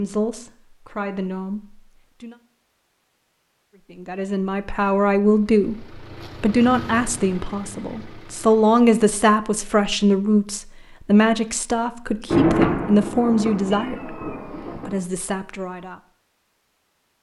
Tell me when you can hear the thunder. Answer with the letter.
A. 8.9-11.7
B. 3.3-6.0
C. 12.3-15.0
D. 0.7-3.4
C.